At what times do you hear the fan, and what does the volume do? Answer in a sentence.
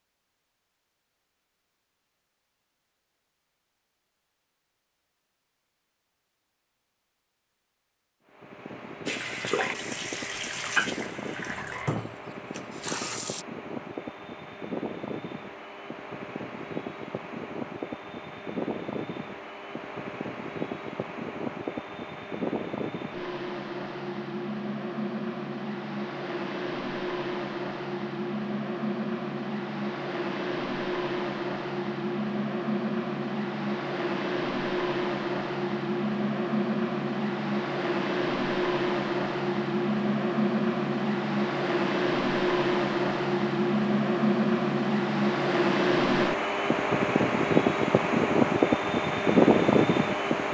The fan can be heard from 8.2 to 50.5 s, getting louder.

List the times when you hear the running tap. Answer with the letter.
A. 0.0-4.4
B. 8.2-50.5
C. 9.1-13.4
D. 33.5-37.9
C.